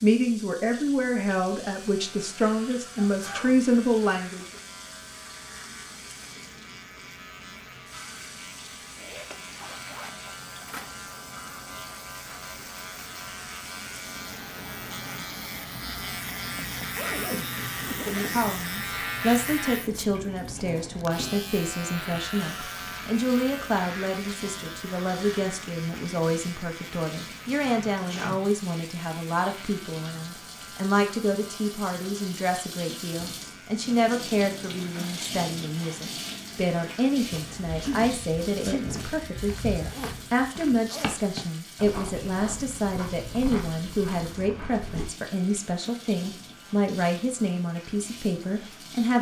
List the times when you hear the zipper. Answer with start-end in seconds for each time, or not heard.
8.9-10.9, 16.9-18.6, 39.8-41.2.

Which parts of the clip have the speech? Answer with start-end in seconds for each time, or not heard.
0.0-4.5, 17.9-49.1.